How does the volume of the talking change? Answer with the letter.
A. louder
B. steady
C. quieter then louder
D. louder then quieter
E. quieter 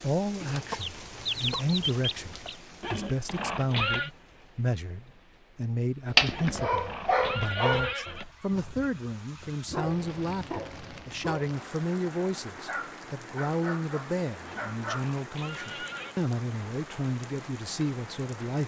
B.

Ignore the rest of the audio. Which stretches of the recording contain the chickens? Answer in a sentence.
You can hear the chickens from 0.4 to 2.5 s.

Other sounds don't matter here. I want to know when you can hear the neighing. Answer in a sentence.
The neighing can be heard from 2.8 to 4.1 s, from 6.3 to 8.2 s and from 14.4 to 16.1 s.